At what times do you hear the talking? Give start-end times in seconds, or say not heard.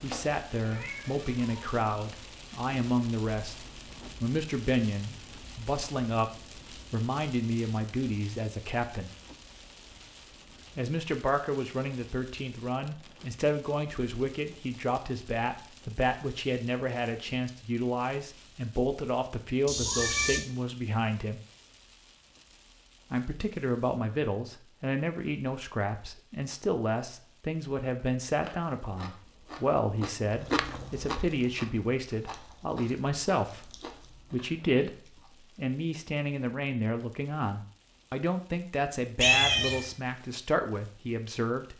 0.0-6.3, 6.9-9.1, 10.8-21.4, 23.1-41.7.